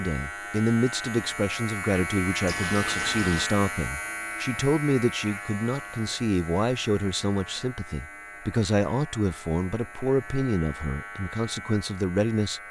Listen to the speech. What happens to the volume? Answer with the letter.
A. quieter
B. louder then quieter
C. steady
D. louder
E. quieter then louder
C.